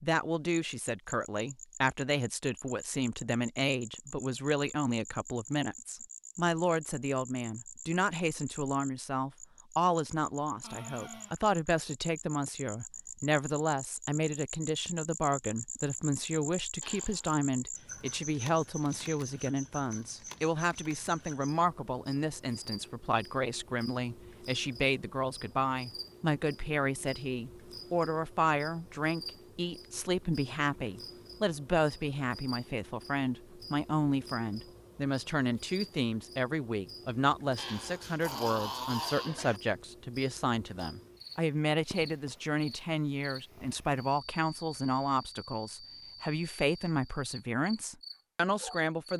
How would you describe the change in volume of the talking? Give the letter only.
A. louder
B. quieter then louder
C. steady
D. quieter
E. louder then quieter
C.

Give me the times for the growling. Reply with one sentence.
You can hear the growling from 10.6 to 11.4 s, from 16.8 to 17.4 s and from 37.5 to 39.6 s.